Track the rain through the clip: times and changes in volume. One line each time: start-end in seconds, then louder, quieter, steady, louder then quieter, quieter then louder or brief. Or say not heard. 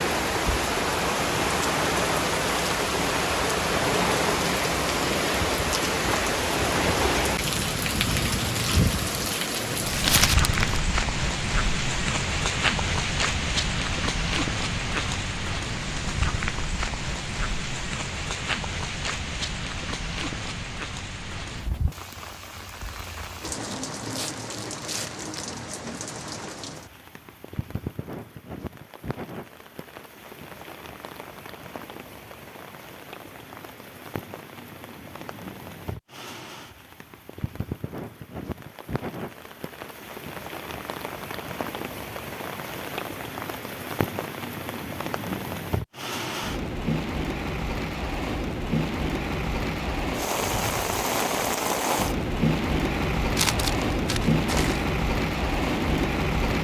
0.0-56.5 quieter then louder.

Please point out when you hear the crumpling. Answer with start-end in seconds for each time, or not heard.
9.8-10.8, 23.6-25.6, 53.4-54.8.